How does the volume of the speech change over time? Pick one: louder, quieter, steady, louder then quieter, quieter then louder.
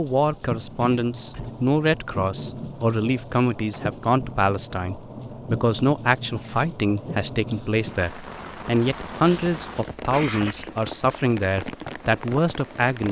steady.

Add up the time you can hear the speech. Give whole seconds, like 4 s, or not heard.
13 s.